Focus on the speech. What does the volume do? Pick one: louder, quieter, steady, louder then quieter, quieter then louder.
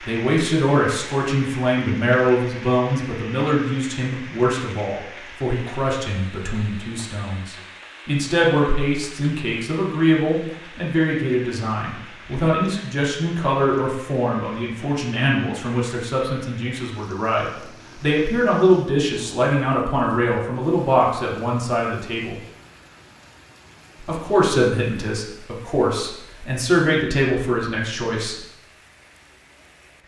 steady.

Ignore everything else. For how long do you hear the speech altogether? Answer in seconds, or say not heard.
27 s.